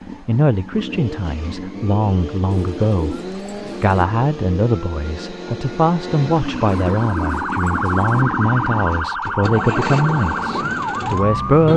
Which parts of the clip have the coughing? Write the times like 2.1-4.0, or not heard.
not heard.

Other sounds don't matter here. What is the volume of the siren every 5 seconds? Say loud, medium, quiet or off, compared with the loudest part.
off, loud, loud.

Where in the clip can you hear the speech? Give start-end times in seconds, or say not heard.
0.2-3.2, 3.8-11.7.